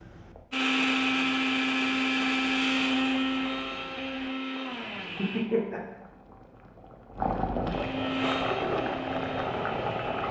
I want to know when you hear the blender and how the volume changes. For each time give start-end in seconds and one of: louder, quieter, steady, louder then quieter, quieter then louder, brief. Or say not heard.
0.0-5.5 quieter
7.7-10.2 brief.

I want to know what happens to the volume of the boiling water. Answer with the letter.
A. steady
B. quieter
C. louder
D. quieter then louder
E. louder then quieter
C.